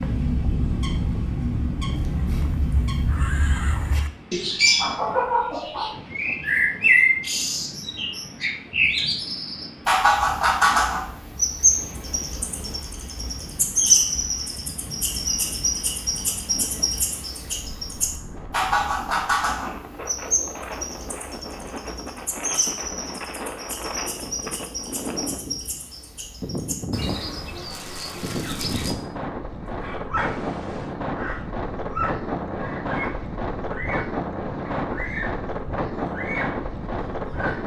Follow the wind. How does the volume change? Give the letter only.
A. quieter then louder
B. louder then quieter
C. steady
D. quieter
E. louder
E.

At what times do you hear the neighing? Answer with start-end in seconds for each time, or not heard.
2.2-4.1, 30.2-30.9.